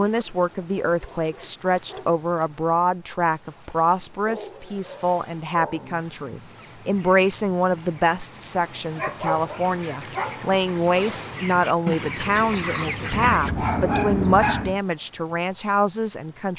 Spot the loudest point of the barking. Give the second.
14 s.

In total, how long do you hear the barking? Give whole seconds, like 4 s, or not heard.
7 s.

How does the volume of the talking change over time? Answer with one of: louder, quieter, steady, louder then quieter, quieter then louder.
steady.